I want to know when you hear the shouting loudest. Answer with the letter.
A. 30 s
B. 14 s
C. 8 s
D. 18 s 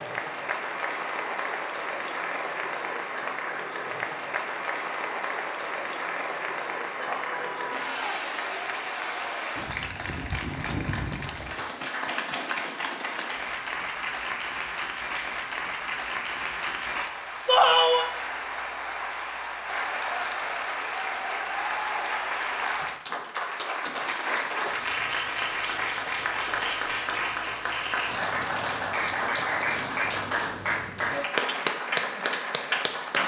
D.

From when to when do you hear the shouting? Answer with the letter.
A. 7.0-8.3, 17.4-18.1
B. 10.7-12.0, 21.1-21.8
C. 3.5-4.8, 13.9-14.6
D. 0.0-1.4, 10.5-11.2
A.